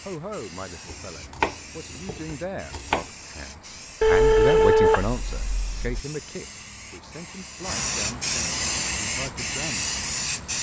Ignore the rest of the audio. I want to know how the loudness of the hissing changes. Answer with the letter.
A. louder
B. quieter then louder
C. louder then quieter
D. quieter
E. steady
A.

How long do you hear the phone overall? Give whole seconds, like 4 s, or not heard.
2 s.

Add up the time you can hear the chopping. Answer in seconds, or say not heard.
2 s.